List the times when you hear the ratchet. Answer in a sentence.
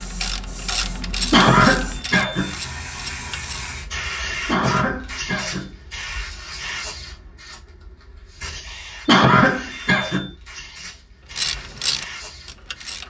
The ratchet can be heard from 0.0 to 3.7 s and from 11.3 to 13.0 s.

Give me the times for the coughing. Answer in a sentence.
The coughing can be heard from 1.3 to 2.5 s, from 4.5 to 5.7 s and from 9.1 to 10.3 s.